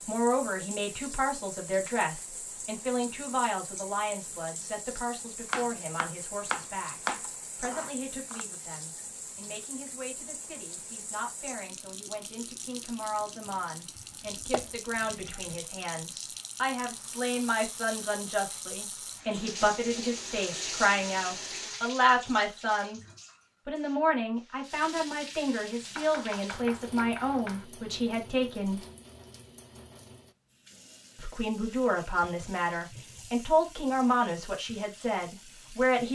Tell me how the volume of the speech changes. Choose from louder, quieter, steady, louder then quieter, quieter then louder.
quieter then louder.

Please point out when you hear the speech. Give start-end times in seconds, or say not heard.
0.1-23.0, 23.6-28.9, 31.1-36.1.